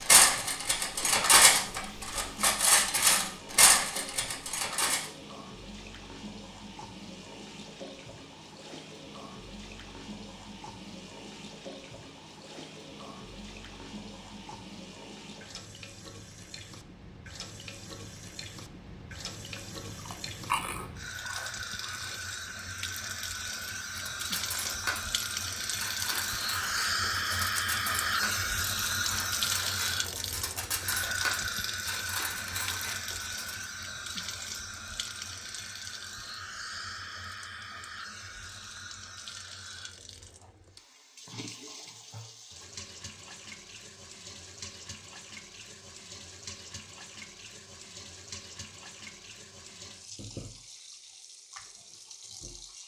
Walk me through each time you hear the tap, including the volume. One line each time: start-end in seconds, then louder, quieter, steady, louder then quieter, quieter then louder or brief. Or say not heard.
0.0-52.8 louder then quieter.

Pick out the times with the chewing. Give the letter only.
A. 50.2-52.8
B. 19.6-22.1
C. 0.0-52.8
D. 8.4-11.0
B.